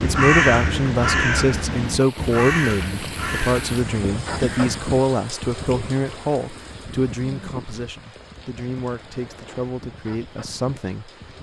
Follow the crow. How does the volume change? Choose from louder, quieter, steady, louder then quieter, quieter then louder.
quieter.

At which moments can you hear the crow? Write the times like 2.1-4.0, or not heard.
0.0-4.8.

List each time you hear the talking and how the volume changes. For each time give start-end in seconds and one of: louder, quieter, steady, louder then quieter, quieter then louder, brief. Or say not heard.
0.0-11.1 quieter.